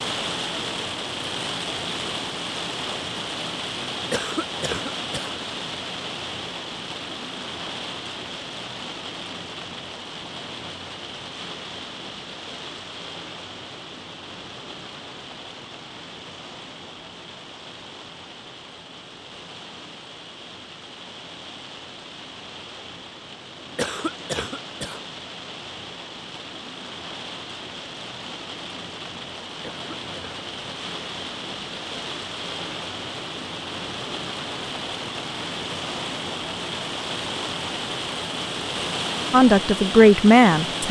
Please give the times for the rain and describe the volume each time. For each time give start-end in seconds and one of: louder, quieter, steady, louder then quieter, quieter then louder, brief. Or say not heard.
0.0-40.8 quieter then louder.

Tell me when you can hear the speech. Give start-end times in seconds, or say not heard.
39.3-40.8.